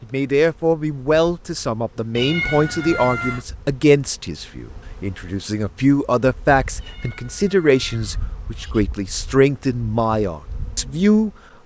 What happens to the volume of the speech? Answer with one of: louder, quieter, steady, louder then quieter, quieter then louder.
steady.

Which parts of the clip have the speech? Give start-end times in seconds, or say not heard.
0.0-11.3.